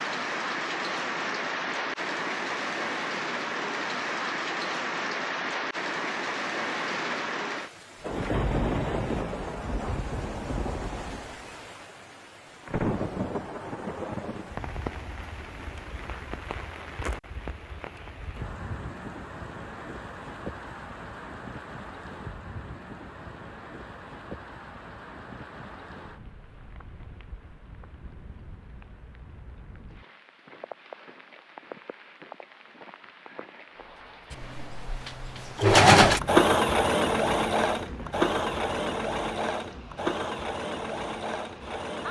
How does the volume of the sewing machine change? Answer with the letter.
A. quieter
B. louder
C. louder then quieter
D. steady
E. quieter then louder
A.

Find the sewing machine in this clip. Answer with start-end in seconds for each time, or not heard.
34.3-42.0.